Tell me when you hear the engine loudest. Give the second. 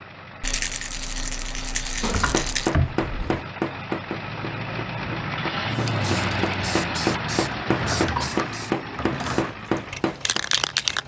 6 s.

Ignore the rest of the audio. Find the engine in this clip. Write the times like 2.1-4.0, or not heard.
0.0-11.0.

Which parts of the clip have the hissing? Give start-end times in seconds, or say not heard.
5.8-11.0.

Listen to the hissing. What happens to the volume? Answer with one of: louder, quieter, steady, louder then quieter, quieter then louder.
quieter then louder.